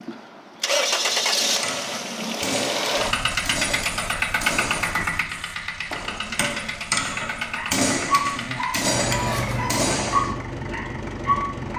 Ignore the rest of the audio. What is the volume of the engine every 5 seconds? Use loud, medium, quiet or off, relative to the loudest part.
loud, medium, medium.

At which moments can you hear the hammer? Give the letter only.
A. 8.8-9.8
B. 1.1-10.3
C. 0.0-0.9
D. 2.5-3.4
B.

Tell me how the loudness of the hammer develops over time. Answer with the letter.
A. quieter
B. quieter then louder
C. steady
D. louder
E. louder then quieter
D.